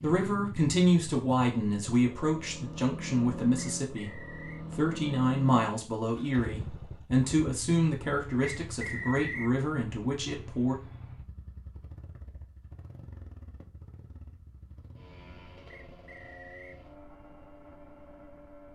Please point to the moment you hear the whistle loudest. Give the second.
9 s.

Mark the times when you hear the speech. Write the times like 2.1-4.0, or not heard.
0.0-10.8.